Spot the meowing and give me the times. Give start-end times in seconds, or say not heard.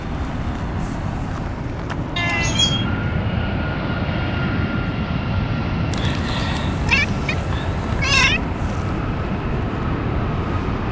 2.1-2.9, 5.9-8.4.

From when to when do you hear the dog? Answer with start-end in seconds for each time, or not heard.
not heard.